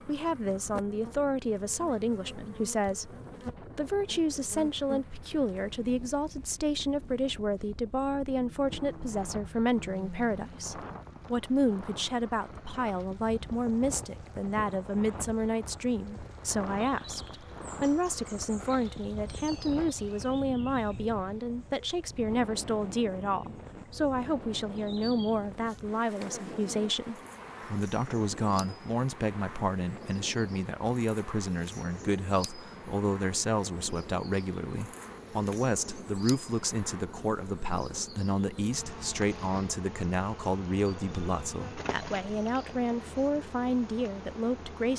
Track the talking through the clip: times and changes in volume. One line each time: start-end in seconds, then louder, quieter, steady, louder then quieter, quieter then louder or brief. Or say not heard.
0.1-44.9 steady.